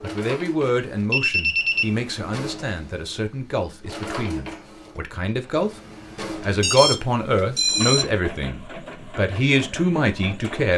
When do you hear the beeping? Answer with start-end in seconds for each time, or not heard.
1.1-1.9, 6.6-8.1.